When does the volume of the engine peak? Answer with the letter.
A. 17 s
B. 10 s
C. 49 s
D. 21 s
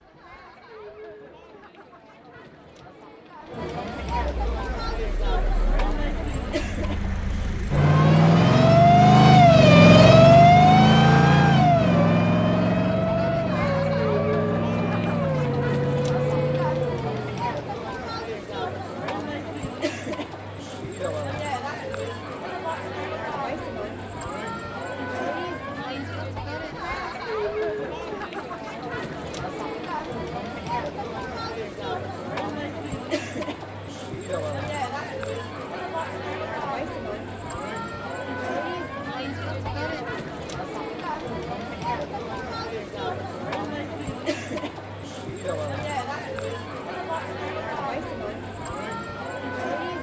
B.